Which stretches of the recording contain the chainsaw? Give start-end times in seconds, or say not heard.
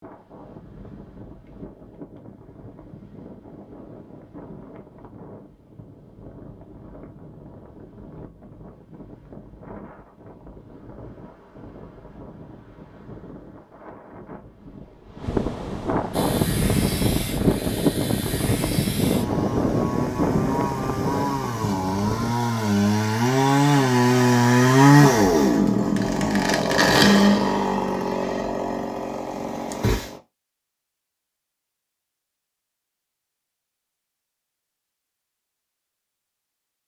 16.1-30.2.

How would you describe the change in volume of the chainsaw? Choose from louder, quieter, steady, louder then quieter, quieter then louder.
louder then quieter.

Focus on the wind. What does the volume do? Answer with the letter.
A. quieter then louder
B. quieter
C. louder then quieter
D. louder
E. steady
D.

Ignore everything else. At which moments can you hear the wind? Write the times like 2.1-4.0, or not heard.
0.0-22.4.